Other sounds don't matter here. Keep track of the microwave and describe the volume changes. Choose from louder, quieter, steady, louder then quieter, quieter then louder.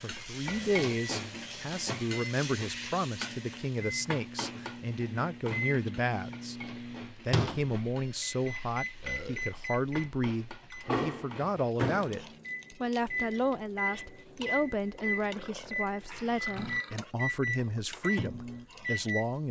louder.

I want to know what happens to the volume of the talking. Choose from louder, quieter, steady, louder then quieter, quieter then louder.
steady.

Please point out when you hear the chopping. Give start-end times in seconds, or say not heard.
not heard.